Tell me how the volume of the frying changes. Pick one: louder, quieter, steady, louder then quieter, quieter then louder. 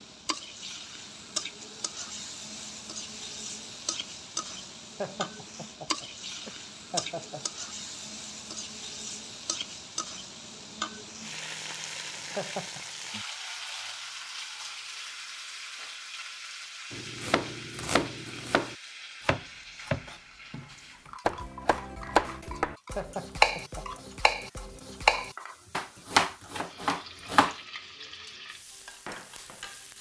quieter.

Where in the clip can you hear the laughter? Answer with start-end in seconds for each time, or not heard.
5.0-7.5, 12.3-12.8, 22.9-24.4.